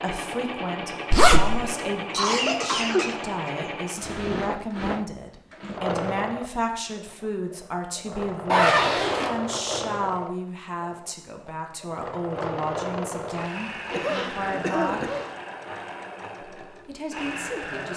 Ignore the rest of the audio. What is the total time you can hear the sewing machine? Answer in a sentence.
You can hear the sewing machine for 18 seconds altogether.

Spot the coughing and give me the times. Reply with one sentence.
The coughing can be heard from 1.4 to 3.5 s and from 13.9 to 15.3 s.